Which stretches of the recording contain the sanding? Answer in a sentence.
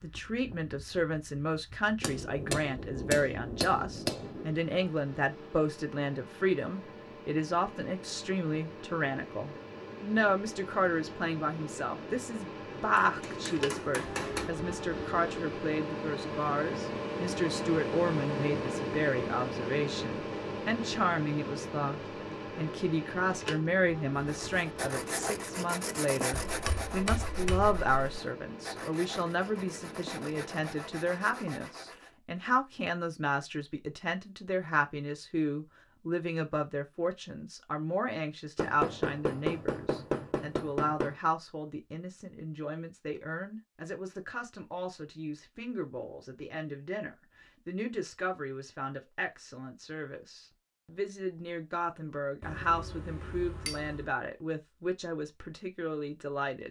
You can hear the sanding from 24.1 to 32.1 s.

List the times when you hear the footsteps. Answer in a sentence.
You can't hear the footsteps here.